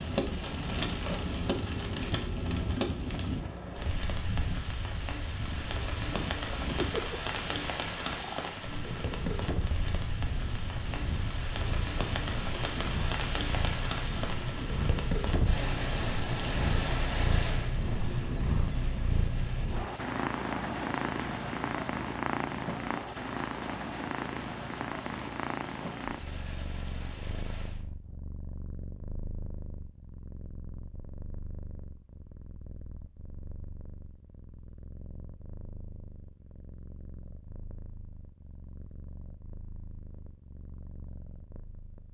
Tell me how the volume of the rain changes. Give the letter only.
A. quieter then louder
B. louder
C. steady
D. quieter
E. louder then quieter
D.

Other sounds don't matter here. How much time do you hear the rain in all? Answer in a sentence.
The rain can be heard for 28 seconds in total.